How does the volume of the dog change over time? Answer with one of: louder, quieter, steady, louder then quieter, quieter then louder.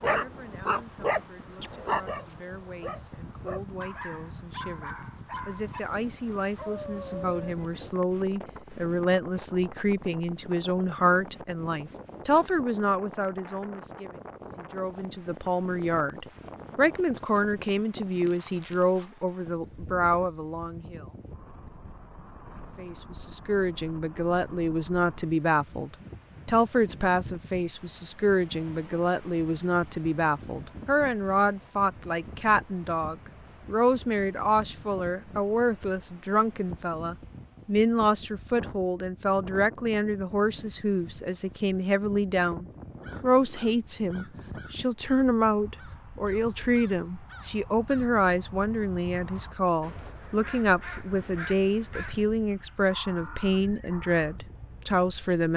quieter.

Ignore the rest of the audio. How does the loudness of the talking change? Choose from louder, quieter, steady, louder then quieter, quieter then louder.
louder.